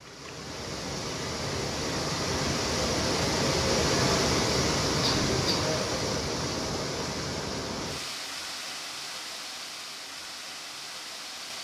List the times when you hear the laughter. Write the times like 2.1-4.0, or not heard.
5.0-5.7.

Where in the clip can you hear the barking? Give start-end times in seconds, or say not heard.
not heard.